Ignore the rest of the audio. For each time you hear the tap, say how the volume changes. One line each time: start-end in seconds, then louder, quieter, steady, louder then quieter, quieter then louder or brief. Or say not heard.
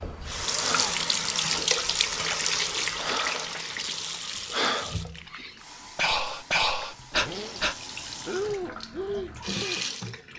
0.0-10.3 quieter then louder.